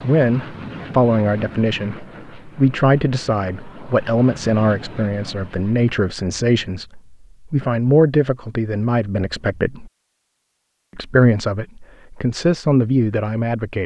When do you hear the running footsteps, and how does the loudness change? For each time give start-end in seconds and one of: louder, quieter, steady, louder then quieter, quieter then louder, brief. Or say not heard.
not heard.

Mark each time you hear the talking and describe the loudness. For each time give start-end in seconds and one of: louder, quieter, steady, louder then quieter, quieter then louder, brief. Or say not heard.
0.0-9.9 steady
10.9-13.8 brief.